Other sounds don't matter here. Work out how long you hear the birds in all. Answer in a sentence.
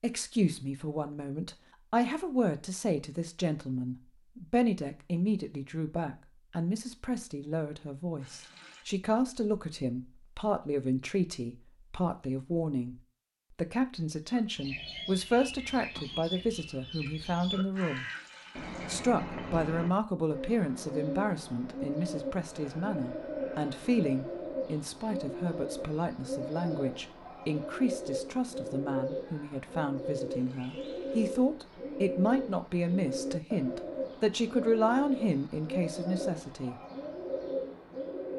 The birds can be heard for 24 seconds in total.